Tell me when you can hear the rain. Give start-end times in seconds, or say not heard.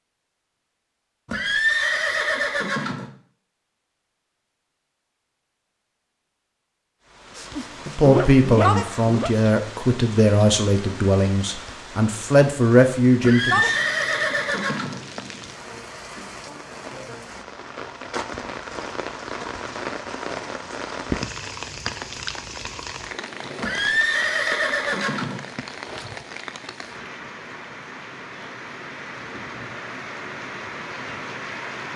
7.1-31.9.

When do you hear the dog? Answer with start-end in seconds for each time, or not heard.
7.3-9.3.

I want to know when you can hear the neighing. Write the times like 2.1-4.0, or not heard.
1.2-3.1, 13.2-15.0, 23.6-25.4.